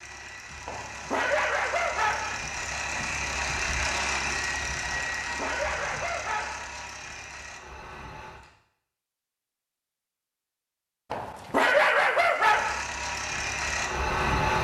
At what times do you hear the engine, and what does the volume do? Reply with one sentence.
The engine can be heard from 0.0 to 8.6 s, getting louder then quieter; and briefly from 12.3 to 14.6 s.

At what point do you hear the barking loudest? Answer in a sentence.
The volume of the barking peaks at 12 seconds.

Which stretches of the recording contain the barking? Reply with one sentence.
The barking can be heard from 0.7 to 2.4 s, from 5.0 to 6.7 s and from 11.1 to 12.8 s.